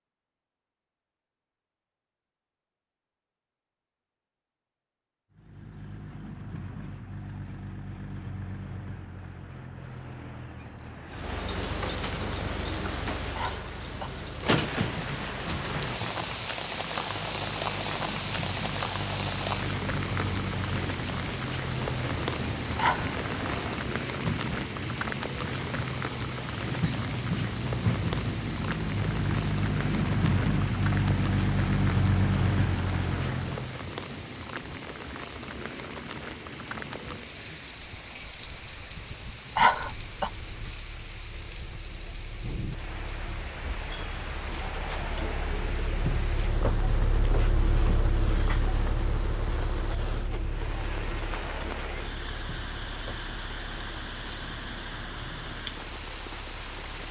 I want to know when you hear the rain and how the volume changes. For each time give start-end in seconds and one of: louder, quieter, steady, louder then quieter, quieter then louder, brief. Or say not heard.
11.1-57.0 quieter.